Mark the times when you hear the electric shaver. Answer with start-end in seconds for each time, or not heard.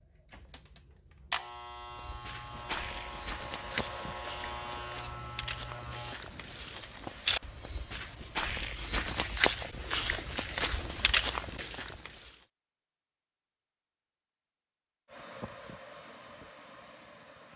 0.0-6.2.